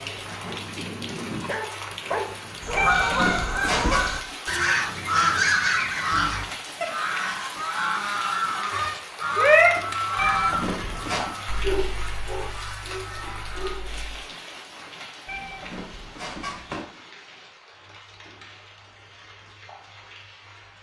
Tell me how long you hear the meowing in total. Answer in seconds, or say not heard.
4 s.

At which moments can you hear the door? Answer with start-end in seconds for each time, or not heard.
not heard.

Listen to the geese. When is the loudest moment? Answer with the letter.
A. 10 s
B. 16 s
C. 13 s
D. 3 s
A.